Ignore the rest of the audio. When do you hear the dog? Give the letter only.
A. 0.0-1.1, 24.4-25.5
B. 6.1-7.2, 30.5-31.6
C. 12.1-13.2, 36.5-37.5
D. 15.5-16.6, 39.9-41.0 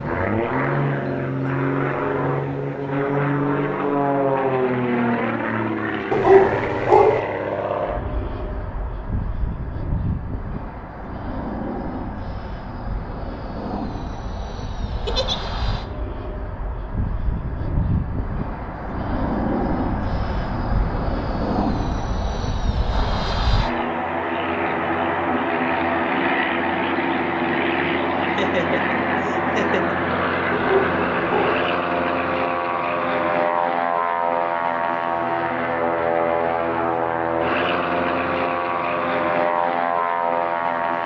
B.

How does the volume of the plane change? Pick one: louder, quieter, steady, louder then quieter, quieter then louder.
quieter then louder.